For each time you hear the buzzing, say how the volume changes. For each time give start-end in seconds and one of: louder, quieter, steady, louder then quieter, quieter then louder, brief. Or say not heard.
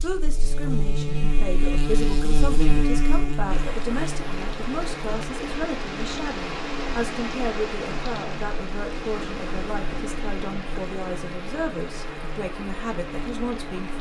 0.0-13.9 quieter.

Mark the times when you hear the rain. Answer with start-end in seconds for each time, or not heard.
3.4-13.9.